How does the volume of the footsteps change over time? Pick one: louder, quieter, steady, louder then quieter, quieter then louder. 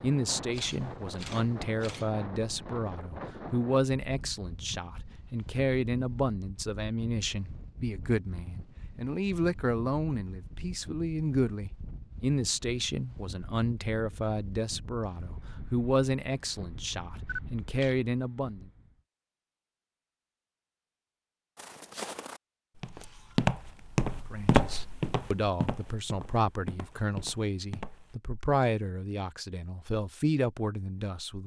louder then quieter.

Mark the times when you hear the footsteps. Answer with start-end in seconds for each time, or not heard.
21.6-28.2.